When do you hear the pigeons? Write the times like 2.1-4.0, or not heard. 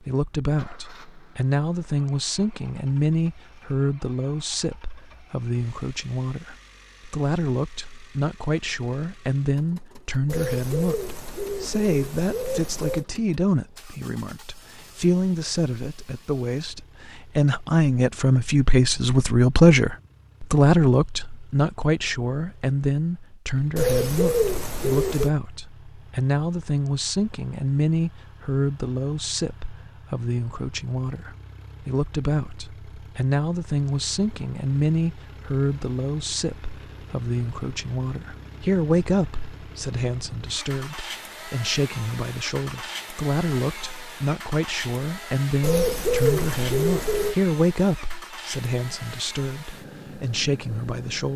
10.2-13.1, 23.8-25.3, 45.6-47.4.